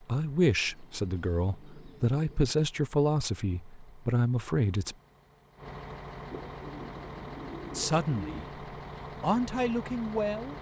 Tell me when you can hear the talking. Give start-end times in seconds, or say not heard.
0.1-5.0, 7.8-8.4, 9.2-10.5.